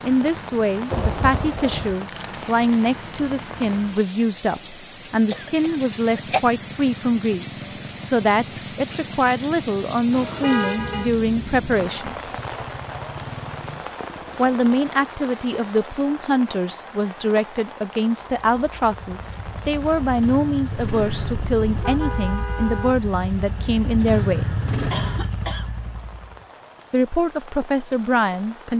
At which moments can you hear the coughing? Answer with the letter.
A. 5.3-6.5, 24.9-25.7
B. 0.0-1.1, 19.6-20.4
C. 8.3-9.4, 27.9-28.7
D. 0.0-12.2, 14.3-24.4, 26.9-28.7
A.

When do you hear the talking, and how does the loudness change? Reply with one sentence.
The talking can be heard from 0.0 to 12.2 s, at a steady volume; from 14.3 to 24.4 s, at a steady volume; and briefly from 26.9 to 28.7 s.